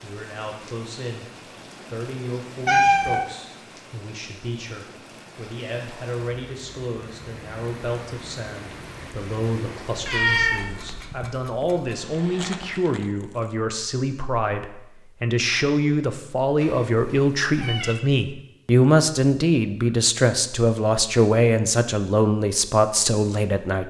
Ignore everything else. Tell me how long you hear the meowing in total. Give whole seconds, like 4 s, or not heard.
4 s.